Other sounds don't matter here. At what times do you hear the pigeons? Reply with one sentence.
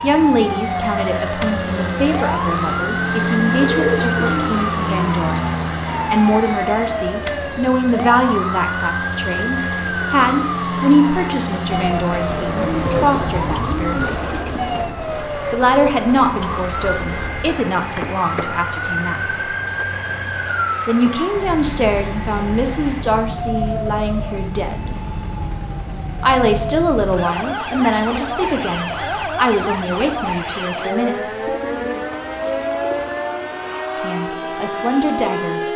The pigeons can be heard from 3.2 to 5.2 s, from 12.2 to 14.9 s and from 31.4 to 33.2 s.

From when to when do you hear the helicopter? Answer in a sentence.
The helicopter can be heard from 0.0 to 35.7 s.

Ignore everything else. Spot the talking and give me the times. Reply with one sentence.
You can hear the talking from 0.0 to 14.2 s, from 15.5 to 19.4 s, from 20.9 to 24.9 s, from 26.2 to 31.4 s and from 34.0 to 35.6 s.